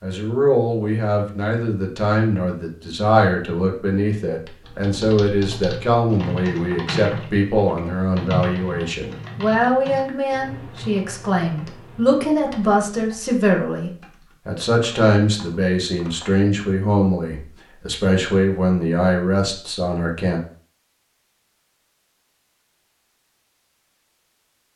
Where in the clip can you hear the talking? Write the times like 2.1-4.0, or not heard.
0.0-20.4.